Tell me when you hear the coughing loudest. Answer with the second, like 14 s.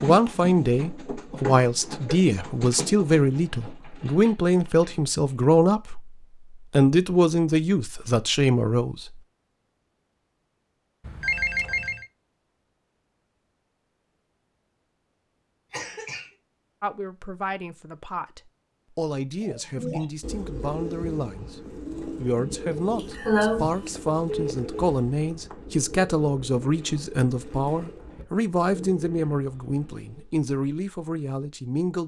23 s.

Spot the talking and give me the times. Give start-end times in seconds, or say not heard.
0.0-9.2, 16.8-32.0.